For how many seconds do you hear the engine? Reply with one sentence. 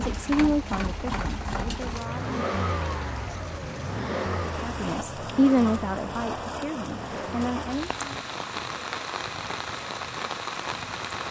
The engine can be heard for 11 seconds in total.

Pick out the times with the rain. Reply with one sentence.
The rain can be heard from 0.0 to 11.2 s.